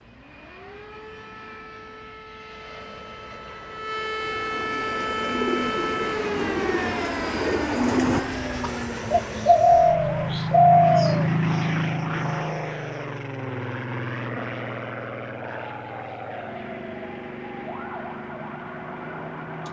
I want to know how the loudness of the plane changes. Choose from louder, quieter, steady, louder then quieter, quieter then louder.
louder then quieter.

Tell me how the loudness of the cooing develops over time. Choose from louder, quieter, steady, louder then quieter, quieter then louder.
louder.